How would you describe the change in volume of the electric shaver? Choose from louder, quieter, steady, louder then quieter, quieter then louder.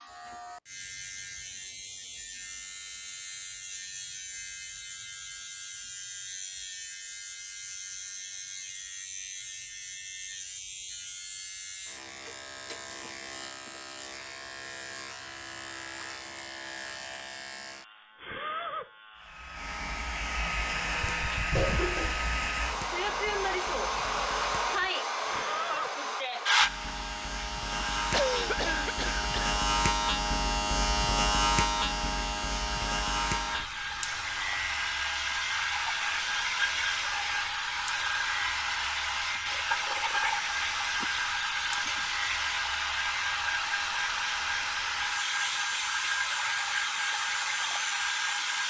louder then quieter.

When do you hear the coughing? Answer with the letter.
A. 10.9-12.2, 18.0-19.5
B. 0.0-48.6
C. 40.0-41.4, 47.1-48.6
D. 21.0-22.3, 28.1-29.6
D.